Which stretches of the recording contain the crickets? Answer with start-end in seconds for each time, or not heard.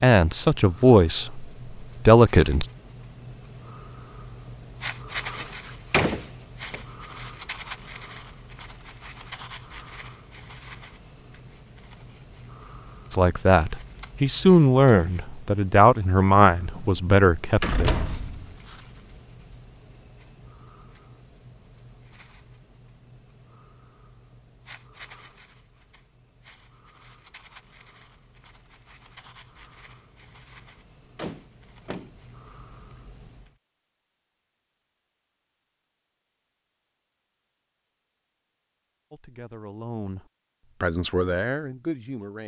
0.0-33.6.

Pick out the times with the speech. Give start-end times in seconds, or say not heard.
0.0-2.6, 13.1-17.9, 39.1-42.4.